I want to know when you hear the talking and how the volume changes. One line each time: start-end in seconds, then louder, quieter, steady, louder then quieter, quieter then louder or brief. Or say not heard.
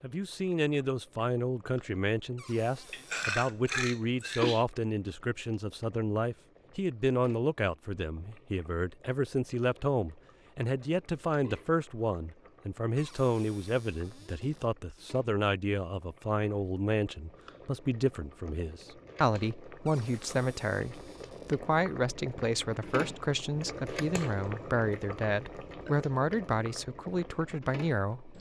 0.0-28.3 steady.